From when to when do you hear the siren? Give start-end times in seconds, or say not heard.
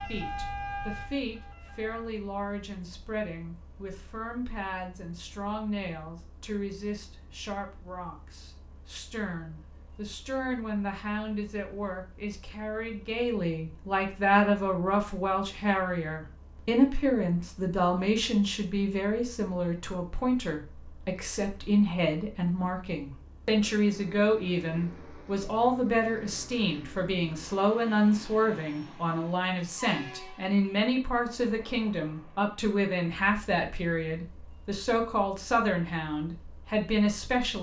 0.0-2.1.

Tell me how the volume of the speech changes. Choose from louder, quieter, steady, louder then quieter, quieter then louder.
louder.